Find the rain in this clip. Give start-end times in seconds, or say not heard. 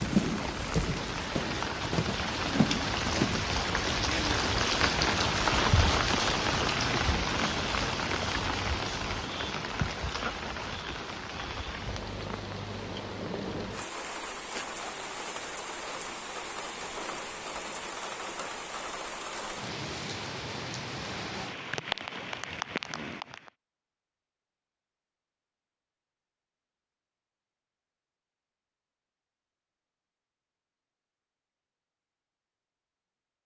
0.0-23.5.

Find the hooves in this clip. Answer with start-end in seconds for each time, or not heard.
0.0-3.4.